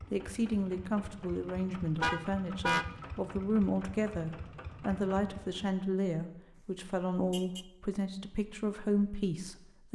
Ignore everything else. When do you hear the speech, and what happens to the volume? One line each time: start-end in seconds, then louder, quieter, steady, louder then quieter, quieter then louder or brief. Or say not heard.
0.1-9.9 steady.